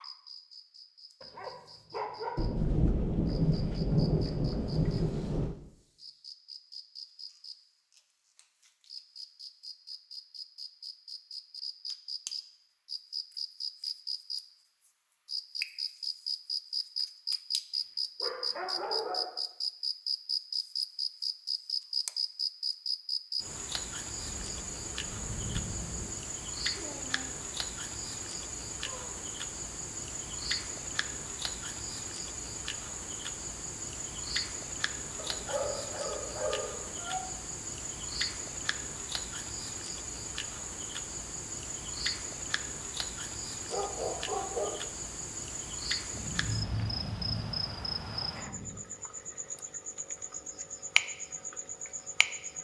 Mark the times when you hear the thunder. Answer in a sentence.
You can hear the thunder from 2.4 to 5.5 s, from 24.1 to 26.1 s and from 46.1 to 48.9 s.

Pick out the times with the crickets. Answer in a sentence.
You can hear the crickets from 0.0 to 52.5 s.